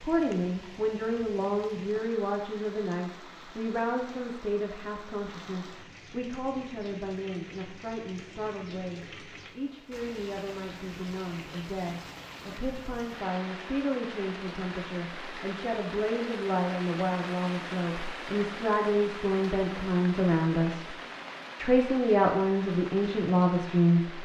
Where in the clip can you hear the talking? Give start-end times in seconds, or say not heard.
0.0-20.9, 21.6-24.2.